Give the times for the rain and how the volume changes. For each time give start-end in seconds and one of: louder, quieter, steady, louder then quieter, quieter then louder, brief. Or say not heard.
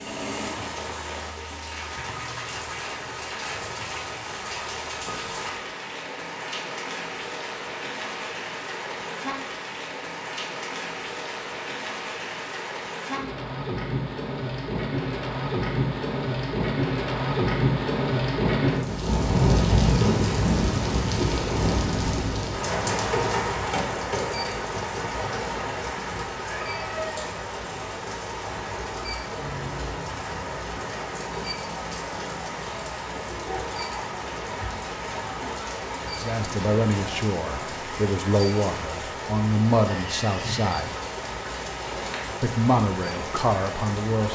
0.0-44.3 louder then quieter.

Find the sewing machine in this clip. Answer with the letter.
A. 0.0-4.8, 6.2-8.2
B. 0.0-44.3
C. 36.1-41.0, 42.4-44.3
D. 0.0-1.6
D.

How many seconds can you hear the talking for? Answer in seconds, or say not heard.
7 s.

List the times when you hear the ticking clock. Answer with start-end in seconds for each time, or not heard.
not heard.